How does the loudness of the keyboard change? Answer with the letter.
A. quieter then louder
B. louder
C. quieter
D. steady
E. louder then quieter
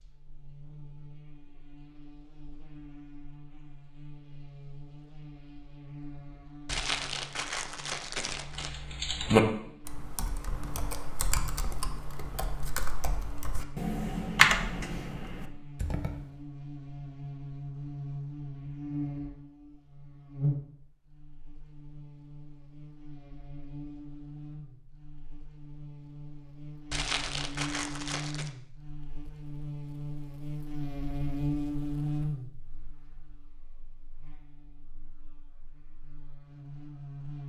A.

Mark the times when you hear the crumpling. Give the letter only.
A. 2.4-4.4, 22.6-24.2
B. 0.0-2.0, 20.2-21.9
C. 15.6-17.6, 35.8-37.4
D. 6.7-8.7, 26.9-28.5
D.